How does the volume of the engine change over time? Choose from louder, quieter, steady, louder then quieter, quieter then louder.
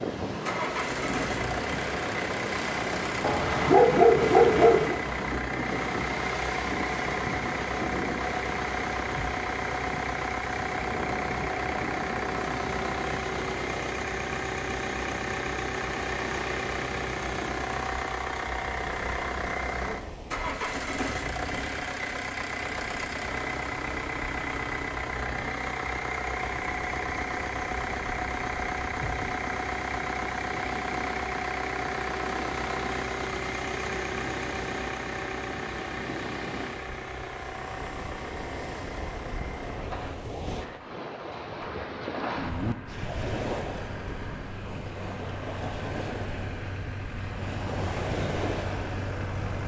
quieter.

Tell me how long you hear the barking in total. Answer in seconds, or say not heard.
2 s.